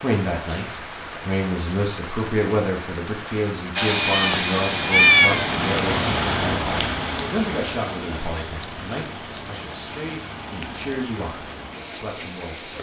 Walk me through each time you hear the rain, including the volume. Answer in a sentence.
The rain can be heard from 0.0 to 12.7 s, getting louder then quieter.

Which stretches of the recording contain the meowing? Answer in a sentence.
The meowing can be heard from 4.1 to 5.5 s.